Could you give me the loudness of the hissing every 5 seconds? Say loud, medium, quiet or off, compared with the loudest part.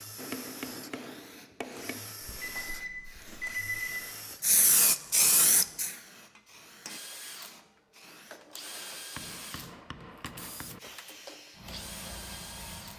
loud, loud, quiet.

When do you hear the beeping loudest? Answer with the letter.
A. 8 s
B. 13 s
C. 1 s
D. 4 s
D.